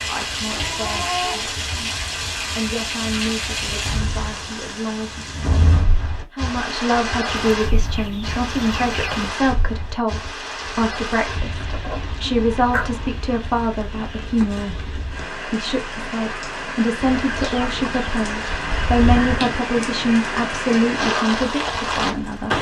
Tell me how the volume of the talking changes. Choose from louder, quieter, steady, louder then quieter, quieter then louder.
louder.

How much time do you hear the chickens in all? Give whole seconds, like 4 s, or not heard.
7 s.